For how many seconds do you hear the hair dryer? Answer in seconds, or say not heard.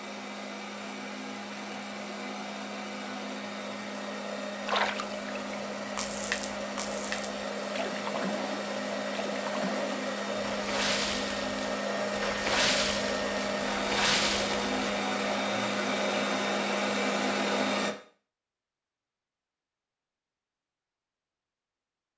18 s.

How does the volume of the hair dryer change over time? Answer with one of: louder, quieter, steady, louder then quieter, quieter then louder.
louder.